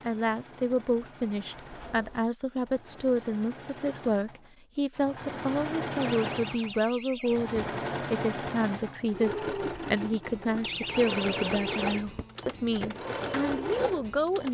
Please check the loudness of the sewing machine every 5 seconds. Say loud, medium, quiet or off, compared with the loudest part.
quiet, loud, loud.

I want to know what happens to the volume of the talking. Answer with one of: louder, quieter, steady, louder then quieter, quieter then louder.
steady.